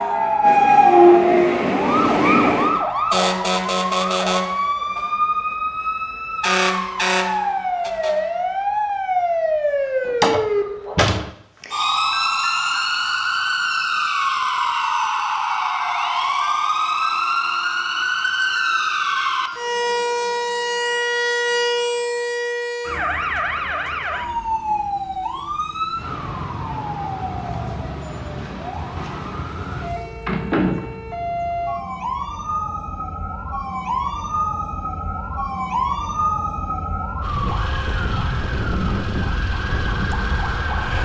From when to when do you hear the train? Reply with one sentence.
The train can be heard from 0.0 to 2.9 s.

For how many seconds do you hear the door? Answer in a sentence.
You can hear the door for 2 seconds altogether.